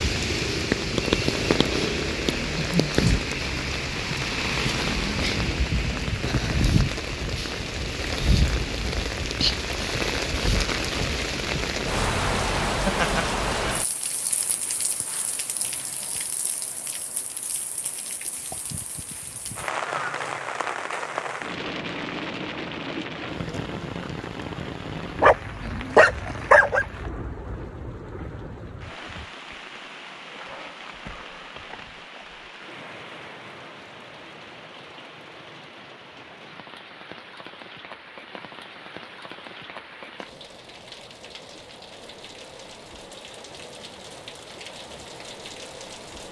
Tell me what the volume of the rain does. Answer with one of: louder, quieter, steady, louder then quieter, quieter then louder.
quieter.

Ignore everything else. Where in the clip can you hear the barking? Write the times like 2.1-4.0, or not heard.
25.1-26.9.